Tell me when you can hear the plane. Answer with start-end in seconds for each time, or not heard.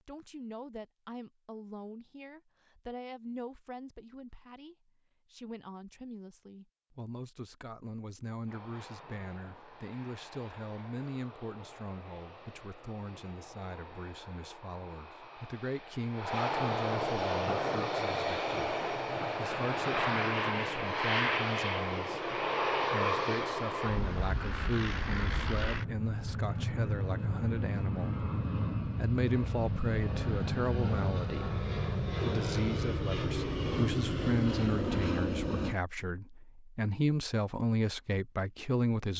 8.4-35.8.